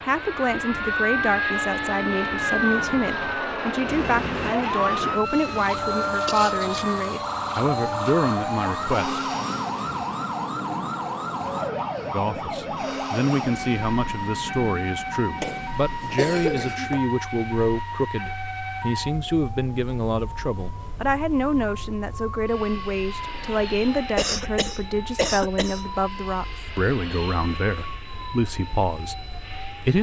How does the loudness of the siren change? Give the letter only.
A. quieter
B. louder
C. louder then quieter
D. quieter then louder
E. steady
A.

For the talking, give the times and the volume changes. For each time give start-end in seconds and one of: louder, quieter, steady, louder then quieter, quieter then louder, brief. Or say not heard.
0.0-9.2 steady
12.1-29.9 steady.